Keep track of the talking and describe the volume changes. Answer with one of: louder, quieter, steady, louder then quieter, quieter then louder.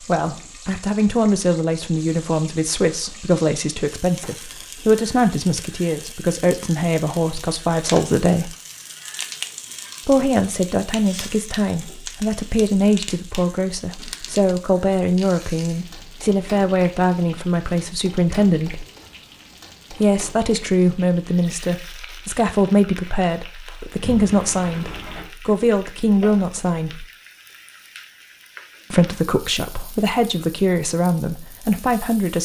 steady.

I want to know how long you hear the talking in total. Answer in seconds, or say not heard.
28 s.